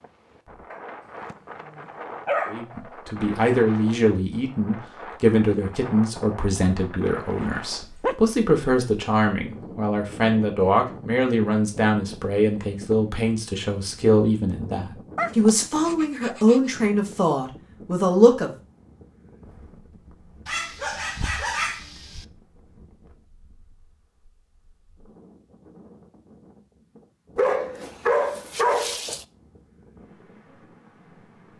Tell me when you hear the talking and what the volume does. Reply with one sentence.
You can hear the talking from 2.5 to 18.5 s, at a steady volume.